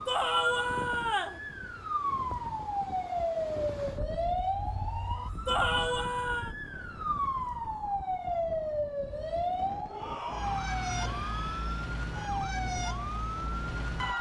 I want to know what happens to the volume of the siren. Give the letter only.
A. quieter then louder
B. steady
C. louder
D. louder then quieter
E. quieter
B.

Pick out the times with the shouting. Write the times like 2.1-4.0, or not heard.
0.1-1.4, 5.5-6.5, 9.8-11.8.